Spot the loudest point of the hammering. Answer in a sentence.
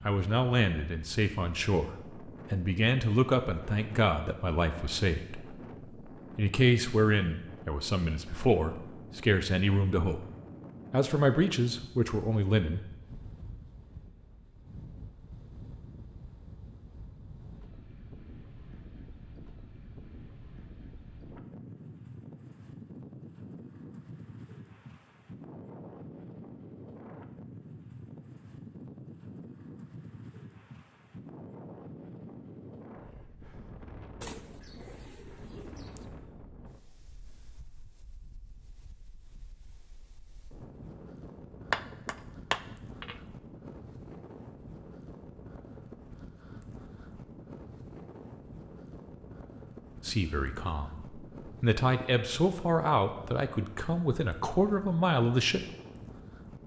The volume of the hammering peaks at 42 seconds.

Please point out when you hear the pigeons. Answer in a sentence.
You can hear the pigeons from 34.2 to 36.1 s.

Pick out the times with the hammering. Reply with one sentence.
You can hear the hammering from 41.7 to 43.2 s.